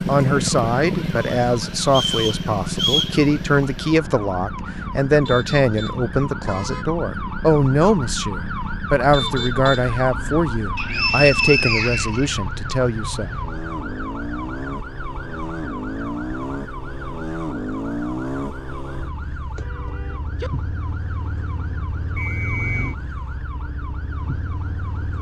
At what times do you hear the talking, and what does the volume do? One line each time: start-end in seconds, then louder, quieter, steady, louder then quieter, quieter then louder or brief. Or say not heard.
0.1-13.4 steady.